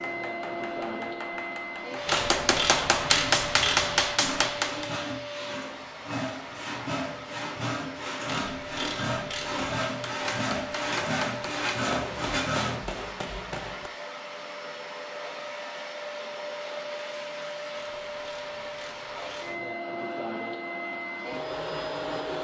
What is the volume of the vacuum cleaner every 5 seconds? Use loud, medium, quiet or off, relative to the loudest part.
loud, medium, medium, loud, loud.